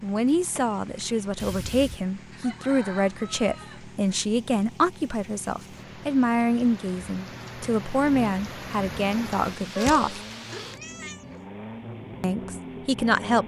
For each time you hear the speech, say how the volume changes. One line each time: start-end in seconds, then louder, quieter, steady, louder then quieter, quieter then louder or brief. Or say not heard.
0.0-10.2 steady
12.2-13.4 brief.